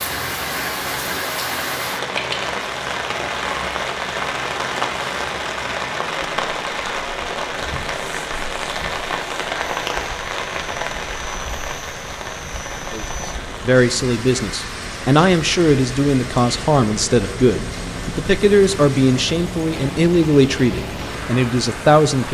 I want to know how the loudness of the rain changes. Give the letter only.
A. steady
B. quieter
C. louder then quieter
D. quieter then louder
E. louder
B.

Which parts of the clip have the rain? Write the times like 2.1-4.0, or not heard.
0.0-22.2.